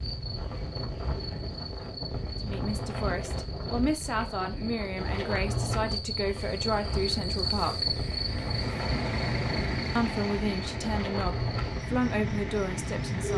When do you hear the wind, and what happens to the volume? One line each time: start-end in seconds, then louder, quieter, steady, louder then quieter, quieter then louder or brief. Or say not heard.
0.0-13.3 steady.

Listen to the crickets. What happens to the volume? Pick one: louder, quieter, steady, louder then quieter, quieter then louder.
louder then quieter.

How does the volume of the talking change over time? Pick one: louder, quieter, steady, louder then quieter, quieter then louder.
steady.